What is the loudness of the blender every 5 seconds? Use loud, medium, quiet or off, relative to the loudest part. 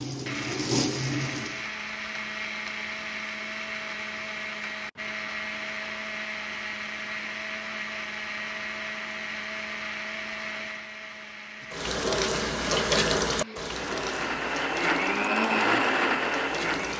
medium, medium, medium, loud.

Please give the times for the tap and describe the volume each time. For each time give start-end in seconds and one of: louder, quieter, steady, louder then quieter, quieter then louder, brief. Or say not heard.
0.0-1.7 brief
11.6-16.9 quieter.